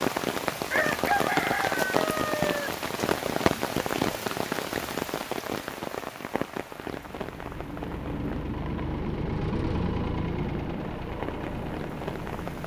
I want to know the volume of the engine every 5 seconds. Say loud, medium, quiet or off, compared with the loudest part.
off, loud, loud.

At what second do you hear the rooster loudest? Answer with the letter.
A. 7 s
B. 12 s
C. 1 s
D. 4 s
C.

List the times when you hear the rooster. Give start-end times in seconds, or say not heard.
0.7-2.7.